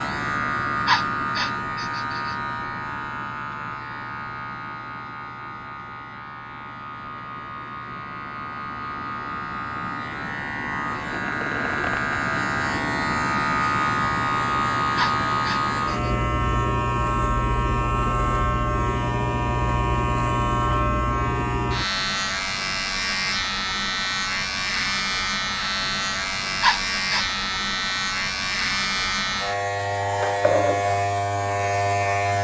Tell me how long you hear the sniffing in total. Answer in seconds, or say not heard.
3 s.